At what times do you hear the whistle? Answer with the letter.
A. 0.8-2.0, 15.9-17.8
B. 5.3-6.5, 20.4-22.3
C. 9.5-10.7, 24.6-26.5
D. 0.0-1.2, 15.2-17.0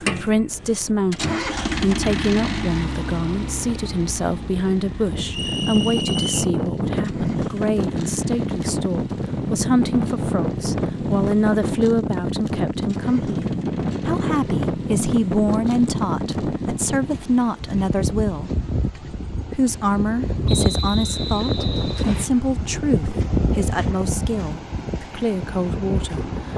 B.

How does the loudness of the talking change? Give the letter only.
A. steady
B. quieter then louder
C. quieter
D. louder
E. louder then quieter
A.